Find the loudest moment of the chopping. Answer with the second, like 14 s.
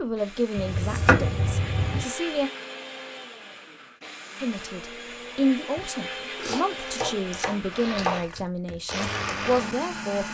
1 s.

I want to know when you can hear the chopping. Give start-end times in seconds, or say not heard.
0.6-2.0, 5.8-8.4.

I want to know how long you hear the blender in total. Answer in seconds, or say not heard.
10 s.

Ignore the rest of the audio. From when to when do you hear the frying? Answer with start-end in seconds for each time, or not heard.
not heard.